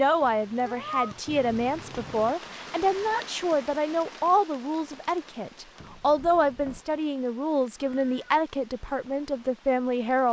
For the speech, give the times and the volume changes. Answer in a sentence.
The speech can be heard from 0.0 to 10.2 s, at a steady volume.